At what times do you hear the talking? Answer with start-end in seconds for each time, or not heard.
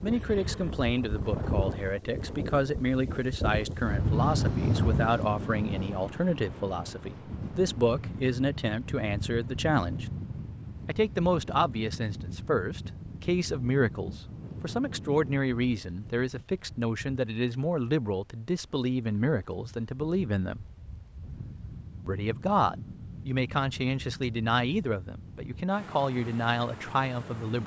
0.0-10.1, 10.8-20.6, 22.1-27.6.